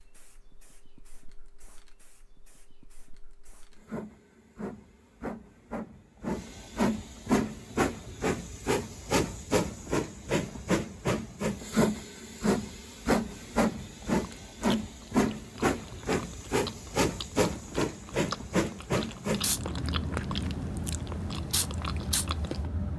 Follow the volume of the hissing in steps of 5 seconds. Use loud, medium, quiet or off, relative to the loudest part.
quiet, loud, loud, loud, medium.